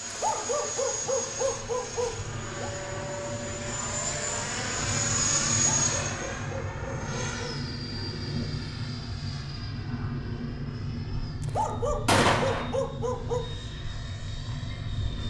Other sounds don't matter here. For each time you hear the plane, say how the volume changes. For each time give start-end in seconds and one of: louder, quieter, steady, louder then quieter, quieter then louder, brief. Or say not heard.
0.0-15.2 louder then quieter.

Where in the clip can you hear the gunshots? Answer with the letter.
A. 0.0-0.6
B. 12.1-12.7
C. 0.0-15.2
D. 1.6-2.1
B.